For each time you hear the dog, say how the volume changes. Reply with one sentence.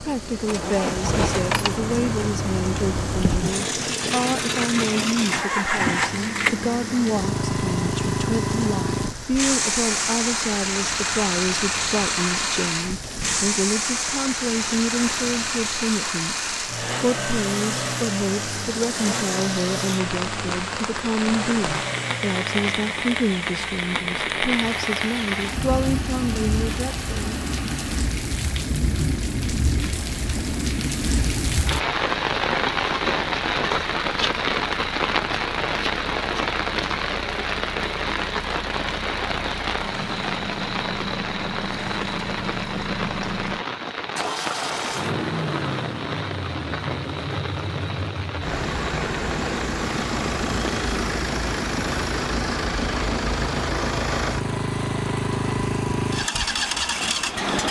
The dog can't be heard in this clip.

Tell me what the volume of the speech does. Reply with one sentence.
The volume of the speech stays about the same.